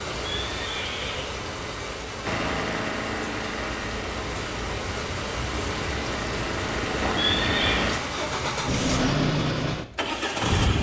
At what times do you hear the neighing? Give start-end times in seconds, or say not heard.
0.2-1.4, 7.2-7.8.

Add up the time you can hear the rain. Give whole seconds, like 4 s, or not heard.
9 s.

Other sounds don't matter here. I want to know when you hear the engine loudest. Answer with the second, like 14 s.
9 s.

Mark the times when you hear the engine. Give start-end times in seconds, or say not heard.
2.2-10.7.